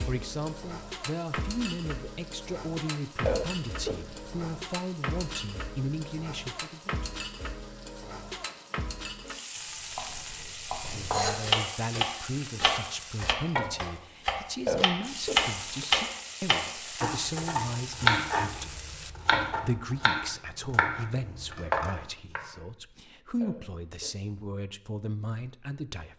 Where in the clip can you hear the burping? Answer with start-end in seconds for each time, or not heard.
3.2-4.2, 14.7-15.8, 23.4-24.1.